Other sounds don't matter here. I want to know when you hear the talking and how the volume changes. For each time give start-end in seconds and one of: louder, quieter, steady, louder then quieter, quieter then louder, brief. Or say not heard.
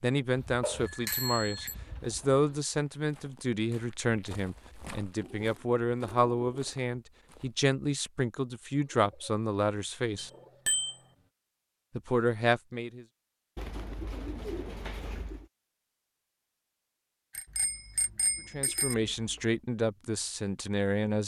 0.0-10.3 steady
11.9-13.1 brief
18.5-21.2 brief.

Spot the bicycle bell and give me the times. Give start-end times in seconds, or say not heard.
0.6-1.8, 10.2-10.9, 17.3-18.9.